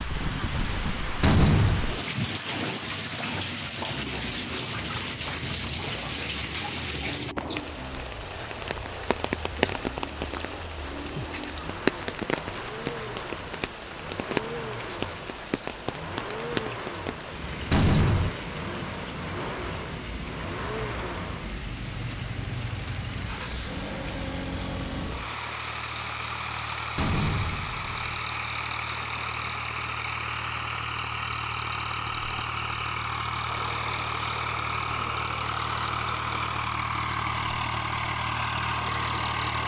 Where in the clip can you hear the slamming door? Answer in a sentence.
The slamming door can be heard from 1.2 to 1.9 s, from 17.7 to 18.4 s and from 26.9 to 28.0 s.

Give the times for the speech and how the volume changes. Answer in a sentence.
You can't hear the speech here.